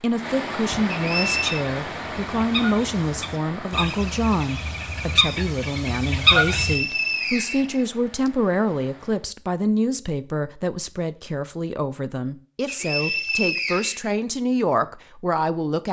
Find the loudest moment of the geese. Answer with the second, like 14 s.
6 s.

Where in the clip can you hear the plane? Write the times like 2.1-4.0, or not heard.
not heard.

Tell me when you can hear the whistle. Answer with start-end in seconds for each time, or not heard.
0.9-1.6, 6.5-8.3, 12.7-14.1.